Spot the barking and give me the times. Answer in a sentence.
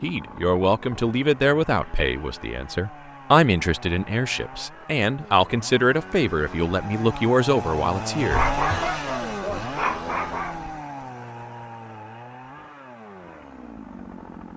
You can hear the barking from 8.3 to 10.8 s.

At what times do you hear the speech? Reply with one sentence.
The speech can be heard from 0.0 to 8.5 s.